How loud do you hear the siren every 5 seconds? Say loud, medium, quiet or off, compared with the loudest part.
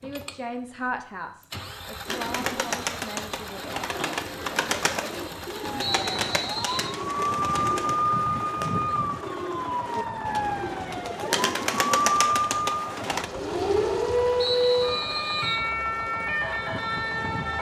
off, medium, loud, loud.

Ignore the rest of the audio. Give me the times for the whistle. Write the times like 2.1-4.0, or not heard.
5.8-7.0, 14.3-15.7.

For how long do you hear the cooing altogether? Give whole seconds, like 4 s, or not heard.
11 s.